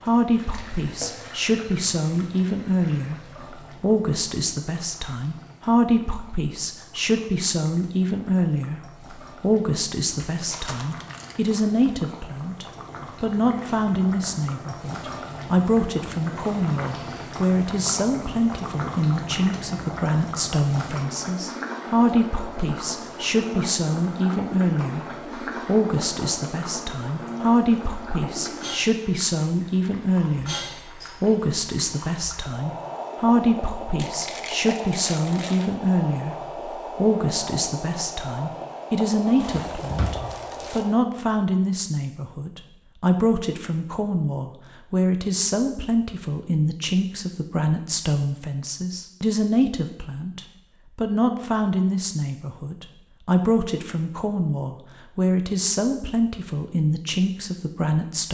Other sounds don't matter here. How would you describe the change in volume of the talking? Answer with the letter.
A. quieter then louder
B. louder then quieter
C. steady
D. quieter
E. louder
C.